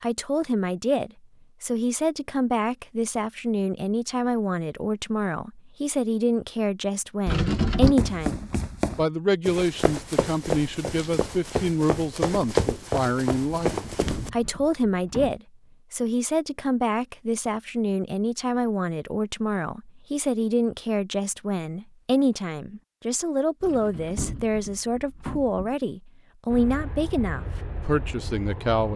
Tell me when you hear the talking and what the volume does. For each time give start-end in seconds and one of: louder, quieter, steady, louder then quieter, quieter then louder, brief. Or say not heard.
0.0-28.9 steady.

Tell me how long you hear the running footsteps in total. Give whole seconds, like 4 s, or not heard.
6 s.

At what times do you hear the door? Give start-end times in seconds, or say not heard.
7.2-8.0, 13.7-15.4, 23.6-25.8.